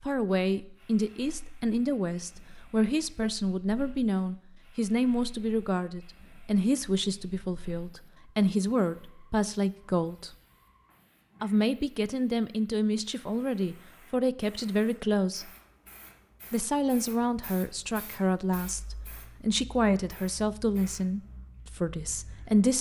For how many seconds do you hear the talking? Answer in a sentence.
You can hear the talking for 21 seconds altogether.